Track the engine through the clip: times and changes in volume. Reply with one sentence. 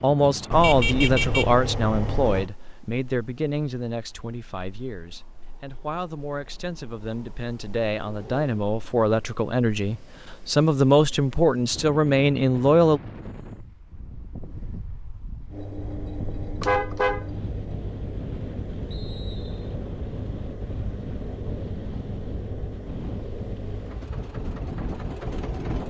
You can hear the engine from 15.5 to 25.8 s, at a steady volume.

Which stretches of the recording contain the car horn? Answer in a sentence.
You can hear the car horn from 0.5 to 2.5 s and from 16.6 to 17.2 s.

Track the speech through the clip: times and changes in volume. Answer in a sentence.
You can hear the speech from 0.0 to 13.0 s, getting quieter then louder.